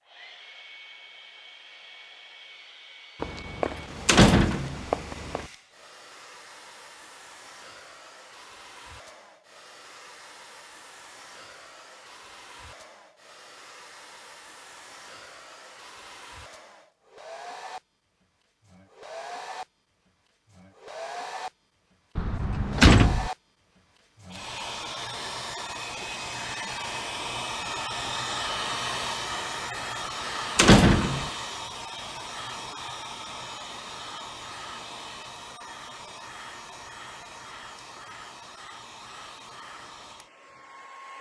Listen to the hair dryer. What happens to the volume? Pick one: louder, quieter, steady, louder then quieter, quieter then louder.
louder then quieter.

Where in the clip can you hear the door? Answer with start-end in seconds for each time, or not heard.
3.2-5.5, 22.1-23.3, 30.6-31.3.